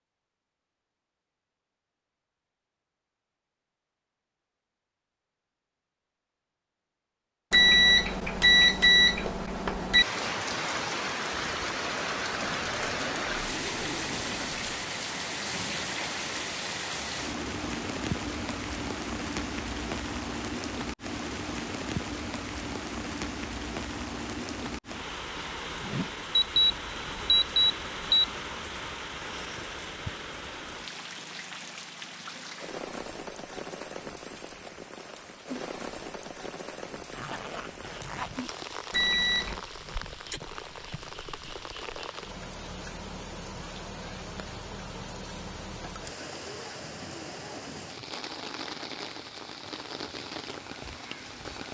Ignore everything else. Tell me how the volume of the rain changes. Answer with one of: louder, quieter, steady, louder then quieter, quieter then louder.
quieter.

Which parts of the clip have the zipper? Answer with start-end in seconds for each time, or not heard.
12.3-14.8, 37.1-38.5.